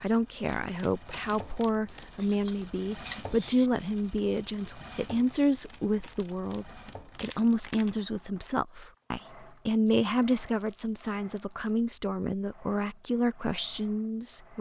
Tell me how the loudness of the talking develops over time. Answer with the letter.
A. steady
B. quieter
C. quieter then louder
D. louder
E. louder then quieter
A.